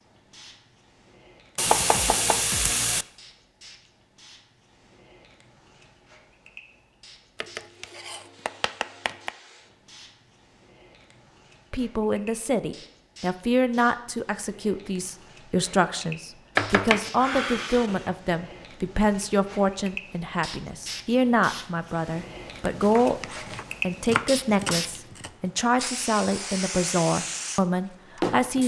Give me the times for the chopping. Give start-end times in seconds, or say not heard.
1.6-3.0, 7.4-9.3, 16.6-18.1, 22.8-25.3.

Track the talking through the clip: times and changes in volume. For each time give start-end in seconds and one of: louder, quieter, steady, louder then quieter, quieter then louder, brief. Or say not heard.
11.7-23.2 steady
23.8-28.6 steady.